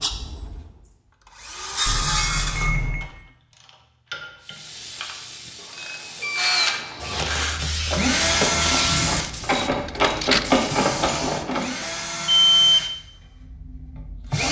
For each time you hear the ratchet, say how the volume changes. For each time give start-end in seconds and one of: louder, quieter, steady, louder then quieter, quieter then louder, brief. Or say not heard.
3.0-11.7 louder.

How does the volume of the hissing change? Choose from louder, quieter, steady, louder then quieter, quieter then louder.
louder.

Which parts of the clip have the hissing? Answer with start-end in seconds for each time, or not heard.
4.4-10.9.